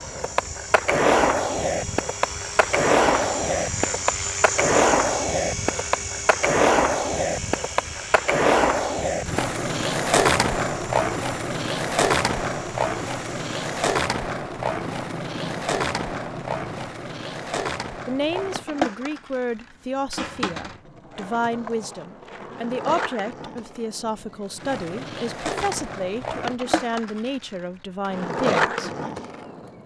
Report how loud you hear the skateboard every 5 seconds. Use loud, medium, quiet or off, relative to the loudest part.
loud, loud, loud, medium, quiet, medium.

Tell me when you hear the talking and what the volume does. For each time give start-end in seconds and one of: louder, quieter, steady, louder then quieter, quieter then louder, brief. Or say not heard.
18.1-28.9 steady.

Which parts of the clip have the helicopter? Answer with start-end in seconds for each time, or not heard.
0.0-16.9.